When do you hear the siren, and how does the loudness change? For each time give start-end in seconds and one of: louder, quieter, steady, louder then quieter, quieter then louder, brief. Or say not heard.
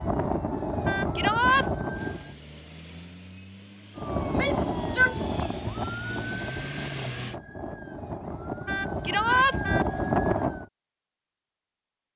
0.0-2.4 brief
4.0-10.7 quieter then louder.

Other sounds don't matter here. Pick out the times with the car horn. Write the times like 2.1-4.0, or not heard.
0.8-1.6, 8.7-9.8.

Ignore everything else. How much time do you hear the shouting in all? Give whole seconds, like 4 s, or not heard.
2 s.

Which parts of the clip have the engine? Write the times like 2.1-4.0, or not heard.
1.9-7.4.